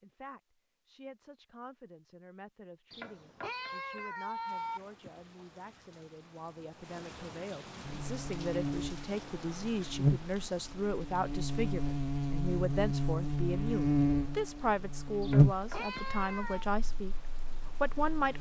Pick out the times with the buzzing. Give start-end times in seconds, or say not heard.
7.8-18.3.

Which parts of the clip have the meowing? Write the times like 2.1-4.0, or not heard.
2.9-4.8, 15.2-16.6.